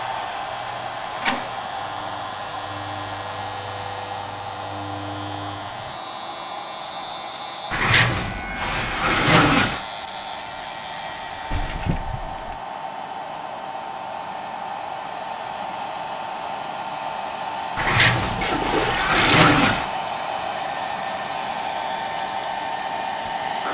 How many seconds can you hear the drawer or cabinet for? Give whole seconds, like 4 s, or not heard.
4 s.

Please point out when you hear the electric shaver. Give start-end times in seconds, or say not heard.
0.0-11.8.